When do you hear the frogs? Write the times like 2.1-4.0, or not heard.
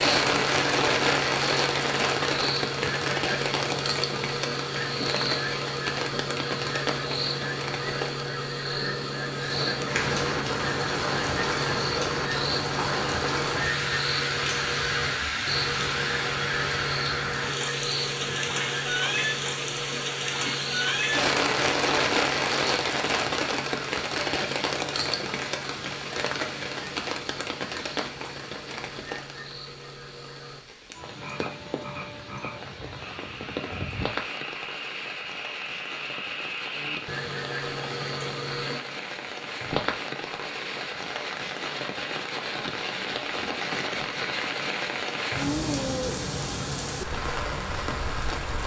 0.0-38.8.